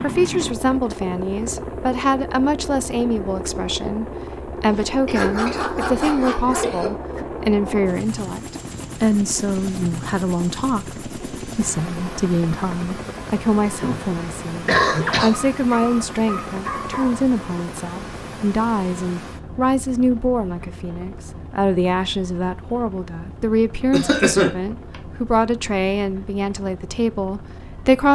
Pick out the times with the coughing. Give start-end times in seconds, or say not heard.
5.0-6.9, 13.8-15.4, 23.9-24.6.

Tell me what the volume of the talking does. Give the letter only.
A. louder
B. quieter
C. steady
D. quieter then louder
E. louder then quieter
C.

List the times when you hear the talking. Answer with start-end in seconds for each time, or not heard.
0.0-28.1.